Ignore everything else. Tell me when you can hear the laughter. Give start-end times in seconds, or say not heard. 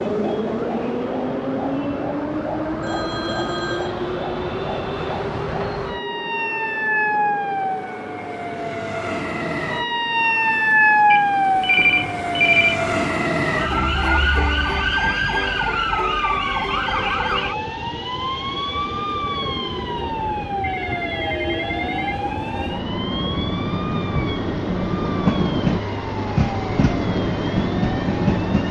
not heard.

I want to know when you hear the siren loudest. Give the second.
11 s.